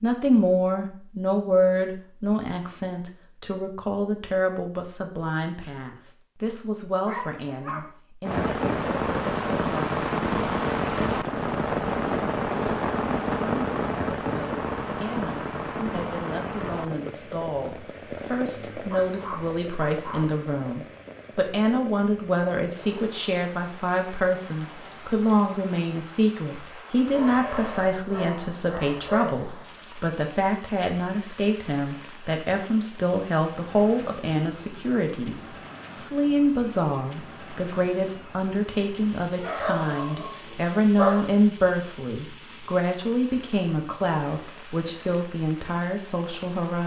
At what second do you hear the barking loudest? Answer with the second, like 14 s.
41 s.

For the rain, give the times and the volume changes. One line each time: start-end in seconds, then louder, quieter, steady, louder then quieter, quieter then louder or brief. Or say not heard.
8.2-46.8 quieter.